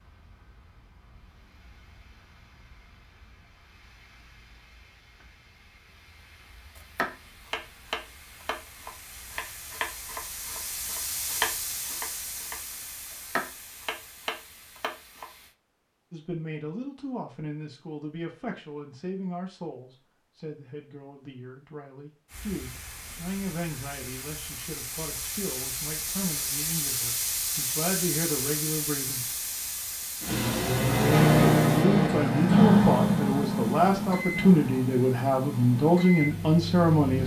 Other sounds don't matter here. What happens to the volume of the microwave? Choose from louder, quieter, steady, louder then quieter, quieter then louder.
quieter.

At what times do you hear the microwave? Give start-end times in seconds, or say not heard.
30.2-37.2.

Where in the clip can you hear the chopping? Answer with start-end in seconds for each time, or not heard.
6.8-15.2.